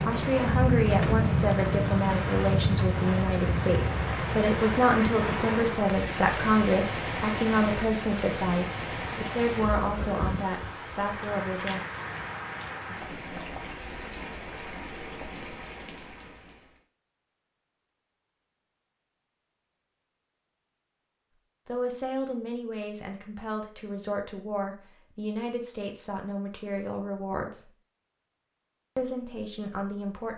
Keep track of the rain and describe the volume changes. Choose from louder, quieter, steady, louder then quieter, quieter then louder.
quieter.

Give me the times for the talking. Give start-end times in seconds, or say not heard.
0.0-11.8, 21.6-27.7, 28.9-30.3.